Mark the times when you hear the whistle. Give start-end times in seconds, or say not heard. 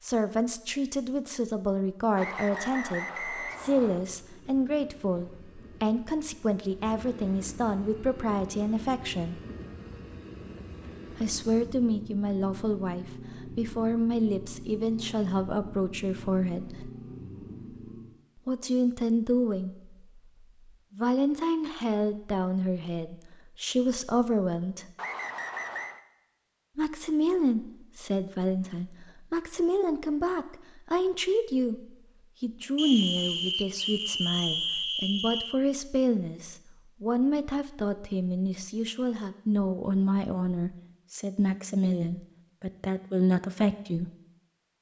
2.1-4.0, 24.9-26.0, 32.8-35.5.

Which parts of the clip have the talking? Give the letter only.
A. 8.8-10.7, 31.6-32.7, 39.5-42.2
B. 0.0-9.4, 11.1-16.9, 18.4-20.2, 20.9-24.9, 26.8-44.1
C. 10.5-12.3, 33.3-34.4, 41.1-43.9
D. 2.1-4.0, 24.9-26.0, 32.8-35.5
B.